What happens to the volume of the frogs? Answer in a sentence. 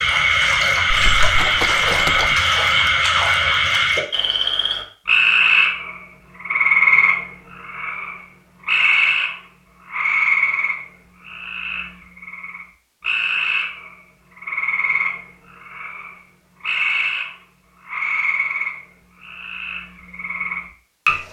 The loudness of the frogs goes down.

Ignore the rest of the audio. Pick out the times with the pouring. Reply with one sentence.
The pouring can be heard from 0.9 to 2.4 s.